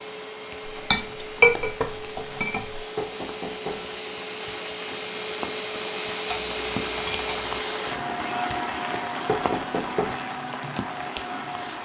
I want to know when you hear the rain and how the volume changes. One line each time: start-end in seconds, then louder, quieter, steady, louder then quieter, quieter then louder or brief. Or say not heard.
0.0-11.8 louder.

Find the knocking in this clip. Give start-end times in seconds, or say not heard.
3.0-3.9, 9.2-10.2.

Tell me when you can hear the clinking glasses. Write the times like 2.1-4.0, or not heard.
0.8-2.8, 6.2-7.6.